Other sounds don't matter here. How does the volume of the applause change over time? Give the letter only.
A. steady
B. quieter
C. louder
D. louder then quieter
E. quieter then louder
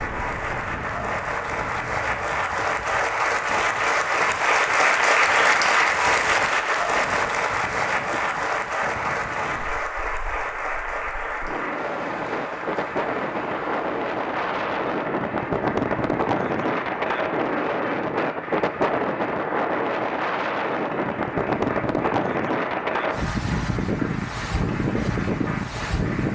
B.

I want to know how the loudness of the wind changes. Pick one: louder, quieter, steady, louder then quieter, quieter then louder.
louder.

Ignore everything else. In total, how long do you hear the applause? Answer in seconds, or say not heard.
26 s.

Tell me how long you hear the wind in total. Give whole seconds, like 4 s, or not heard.
26 s.